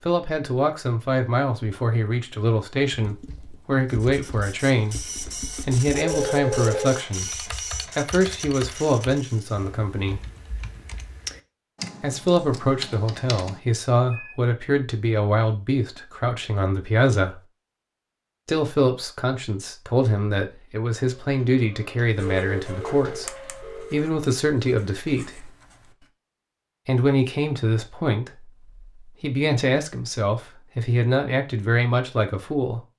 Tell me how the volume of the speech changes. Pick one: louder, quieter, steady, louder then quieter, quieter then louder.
steady.